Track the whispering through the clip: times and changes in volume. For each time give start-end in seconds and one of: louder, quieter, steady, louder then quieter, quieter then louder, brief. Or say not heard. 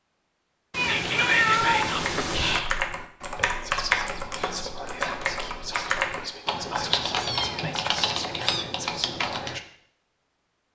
0.8-9.6 quieter.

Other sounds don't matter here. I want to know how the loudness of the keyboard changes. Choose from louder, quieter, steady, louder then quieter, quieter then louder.
steady.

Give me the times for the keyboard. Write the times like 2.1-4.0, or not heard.
1.9-9.6.